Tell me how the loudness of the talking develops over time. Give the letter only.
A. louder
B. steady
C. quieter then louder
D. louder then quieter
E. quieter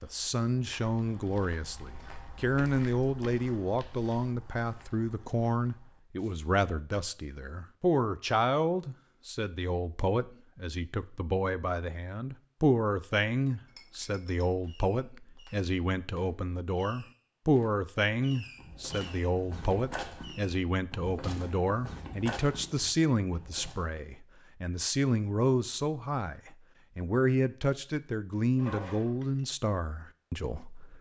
B.